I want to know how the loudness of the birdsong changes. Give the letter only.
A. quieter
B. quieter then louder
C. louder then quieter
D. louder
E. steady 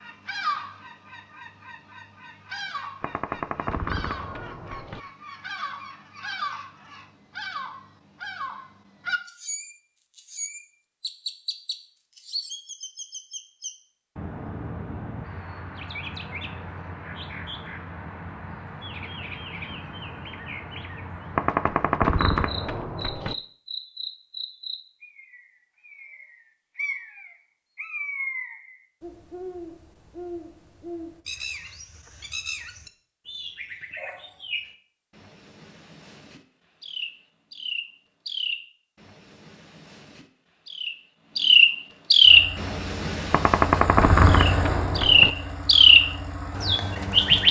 D.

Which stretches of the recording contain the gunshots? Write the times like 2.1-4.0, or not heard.
3.0-5.0, 21.4-23.4, 43.3-45.3.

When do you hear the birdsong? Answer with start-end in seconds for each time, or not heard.
0.0-47.4.